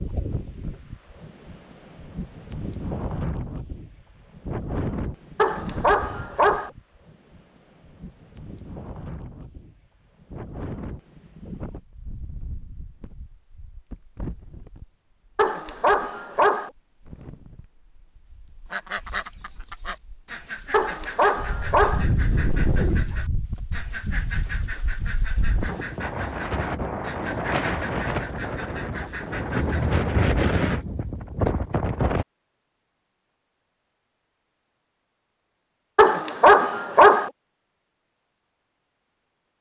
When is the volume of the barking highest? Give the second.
37 s.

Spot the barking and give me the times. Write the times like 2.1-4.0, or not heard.
5.3-6.7, 15.3-16.7, 20.7-22.1, 36.0-37.3.